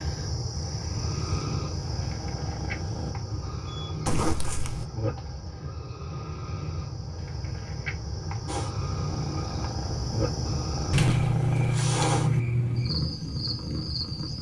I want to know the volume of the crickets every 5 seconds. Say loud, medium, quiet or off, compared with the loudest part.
medium, medium, loud.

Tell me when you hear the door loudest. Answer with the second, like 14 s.
11 s.